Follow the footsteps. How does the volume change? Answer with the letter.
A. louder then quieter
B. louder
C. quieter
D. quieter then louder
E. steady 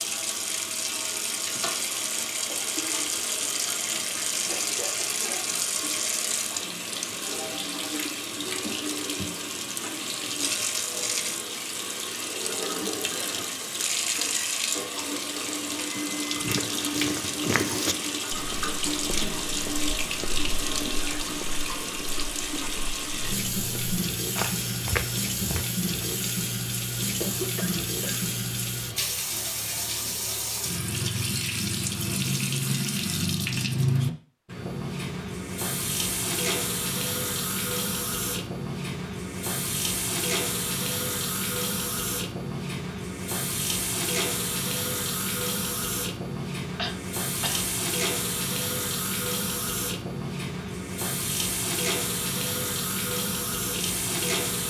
D.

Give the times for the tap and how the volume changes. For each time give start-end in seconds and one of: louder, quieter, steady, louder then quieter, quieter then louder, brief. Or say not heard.
0.0-54.6 steady.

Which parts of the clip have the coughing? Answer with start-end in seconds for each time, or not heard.
4.5-5.5, 27.2-28.3, 46.8-47.6.